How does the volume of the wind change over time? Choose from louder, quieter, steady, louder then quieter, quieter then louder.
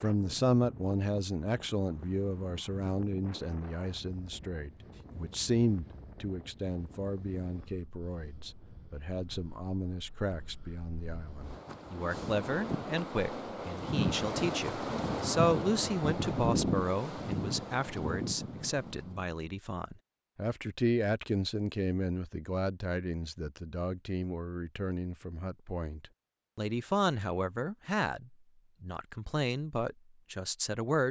quieter then louder.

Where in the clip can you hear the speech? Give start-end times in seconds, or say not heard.
0.0-31.0.